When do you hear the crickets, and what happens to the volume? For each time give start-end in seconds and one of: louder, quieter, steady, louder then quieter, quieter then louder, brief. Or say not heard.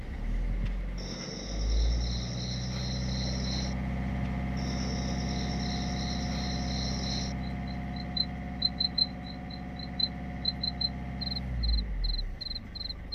0.0-13.1 louder then quieter.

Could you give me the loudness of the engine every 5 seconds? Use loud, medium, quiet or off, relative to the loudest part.
loud, loud, medium.